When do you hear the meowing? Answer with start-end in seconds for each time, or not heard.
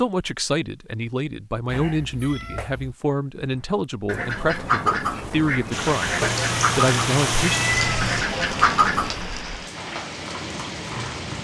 1.6-3.0, 6.2-8.2.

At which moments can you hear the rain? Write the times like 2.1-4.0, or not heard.
5.7-11.3.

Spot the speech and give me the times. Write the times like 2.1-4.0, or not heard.
0.0-7.7.